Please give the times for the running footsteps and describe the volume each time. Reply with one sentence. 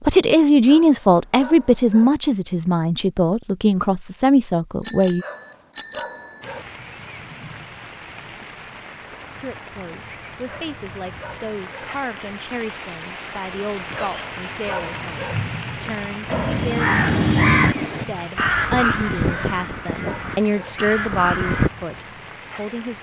The running footsteps can't be heard in this clip.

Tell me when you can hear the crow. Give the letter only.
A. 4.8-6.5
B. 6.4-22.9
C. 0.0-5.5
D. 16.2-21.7
D.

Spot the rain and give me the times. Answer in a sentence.
You can hear the rain from 6.4 to 22.9 s.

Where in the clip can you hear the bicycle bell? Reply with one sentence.
You can hear the bicycle bell from 4.8 to 6.5 s.